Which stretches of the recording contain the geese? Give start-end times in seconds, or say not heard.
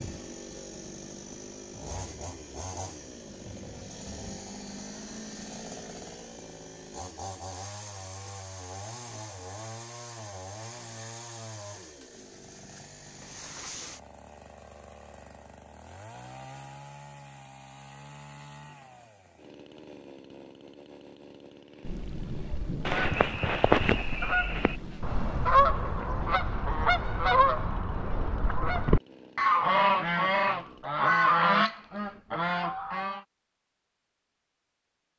22.5-33.2.